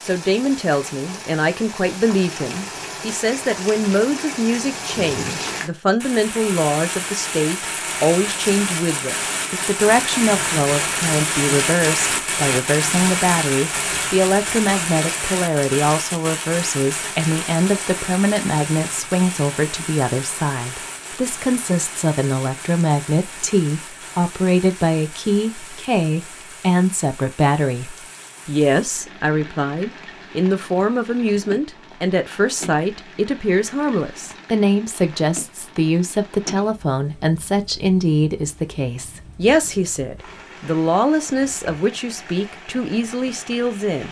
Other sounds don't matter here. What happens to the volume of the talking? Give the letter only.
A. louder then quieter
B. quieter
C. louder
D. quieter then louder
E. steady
E.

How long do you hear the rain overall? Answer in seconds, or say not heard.
44 s.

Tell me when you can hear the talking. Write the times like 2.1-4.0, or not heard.
0.0-44.0.